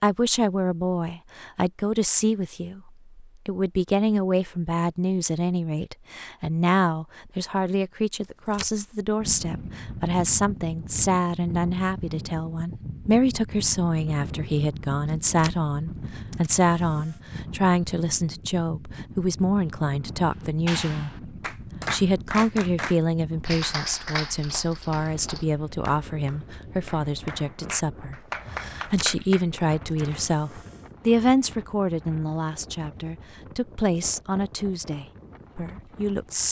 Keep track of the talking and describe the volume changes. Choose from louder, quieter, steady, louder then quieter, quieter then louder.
steady.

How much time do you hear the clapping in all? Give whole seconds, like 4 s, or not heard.
9 s.